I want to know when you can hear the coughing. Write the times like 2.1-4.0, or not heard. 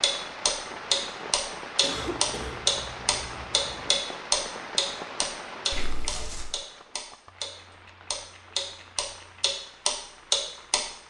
1.8-2.6, 5.7-6.5.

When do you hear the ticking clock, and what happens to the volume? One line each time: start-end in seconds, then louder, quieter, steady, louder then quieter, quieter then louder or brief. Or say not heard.
0.0-7.5 quieter
8.1-10.8 brief.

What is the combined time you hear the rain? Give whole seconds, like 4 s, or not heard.
11 s.